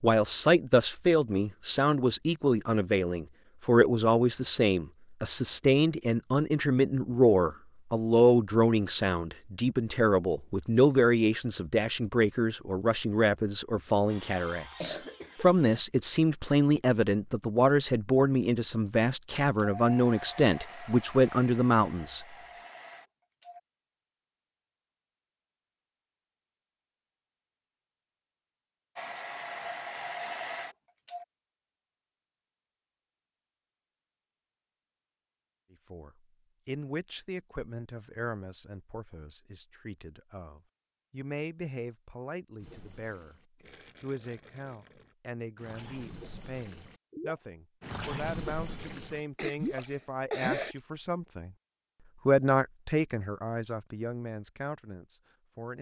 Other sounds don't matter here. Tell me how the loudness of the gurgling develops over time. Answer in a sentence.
The volume of the gurgling goes up.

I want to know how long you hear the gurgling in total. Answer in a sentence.
You can hear the gurgling for 8 seconds altogether.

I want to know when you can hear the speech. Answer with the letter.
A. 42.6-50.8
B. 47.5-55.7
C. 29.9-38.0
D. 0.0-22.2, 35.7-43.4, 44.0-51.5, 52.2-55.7
D.